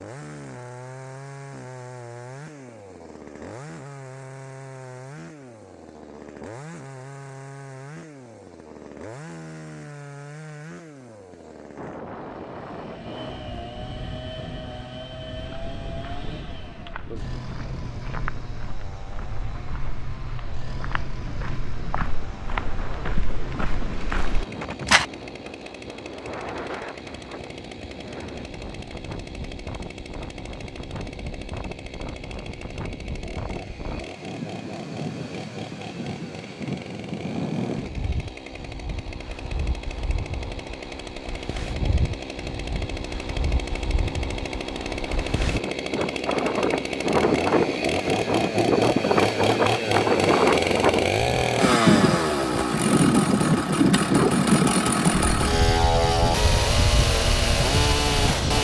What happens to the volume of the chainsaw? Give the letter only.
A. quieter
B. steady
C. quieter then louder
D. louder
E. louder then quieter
D.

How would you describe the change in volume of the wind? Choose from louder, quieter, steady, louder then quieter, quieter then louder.
louder.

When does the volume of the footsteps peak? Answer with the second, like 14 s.
25 s.